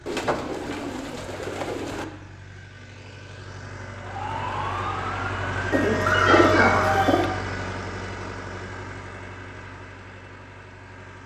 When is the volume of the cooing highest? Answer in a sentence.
The loudest moment of the cooing is at 6 seconds.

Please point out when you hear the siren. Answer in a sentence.
The siren can be heard from 4.0 to 7.5 s.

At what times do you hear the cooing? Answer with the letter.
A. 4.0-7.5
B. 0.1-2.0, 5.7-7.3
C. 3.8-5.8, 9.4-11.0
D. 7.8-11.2
B.